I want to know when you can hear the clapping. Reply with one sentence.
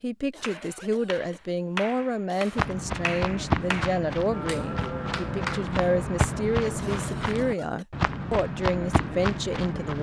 You can hear the clapping from 0.4 to 5.7 s.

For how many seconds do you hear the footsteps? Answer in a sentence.
You can hear the footsteps for 7 seconds altogether.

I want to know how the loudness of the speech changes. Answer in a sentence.
The volume of the speech stays about the same.